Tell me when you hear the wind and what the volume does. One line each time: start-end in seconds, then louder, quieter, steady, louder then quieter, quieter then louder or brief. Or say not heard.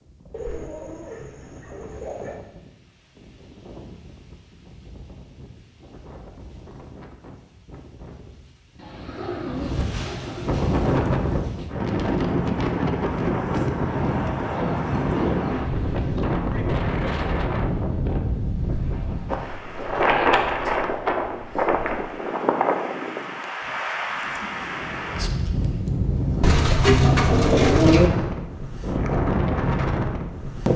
0.0-30.7 louder.